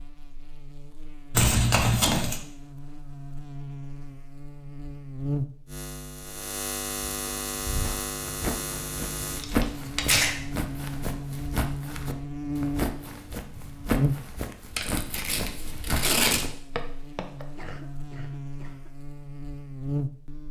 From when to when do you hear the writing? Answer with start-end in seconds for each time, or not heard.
not heard.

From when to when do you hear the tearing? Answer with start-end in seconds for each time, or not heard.
1.3-2.4, 9.3-10.3, 14.8-16.4.